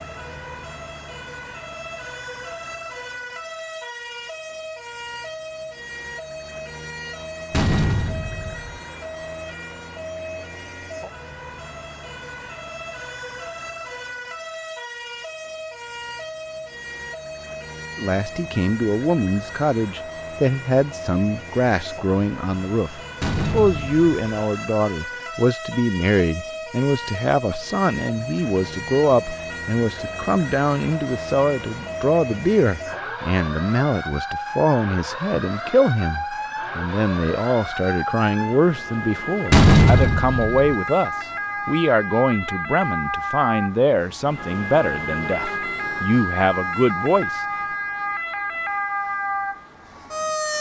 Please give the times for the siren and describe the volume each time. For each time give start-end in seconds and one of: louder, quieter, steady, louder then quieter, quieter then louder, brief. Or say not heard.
0.0-50.5 louder.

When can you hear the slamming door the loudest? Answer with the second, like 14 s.
40 s.